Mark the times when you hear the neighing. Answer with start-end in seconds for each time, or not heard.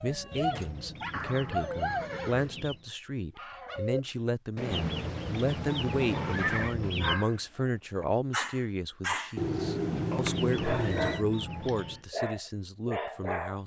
1.1-2.5, 4.5-6.8, 9.3-11.2.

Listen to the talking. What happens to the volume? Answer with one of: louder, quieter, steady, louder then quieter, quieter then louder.
steady.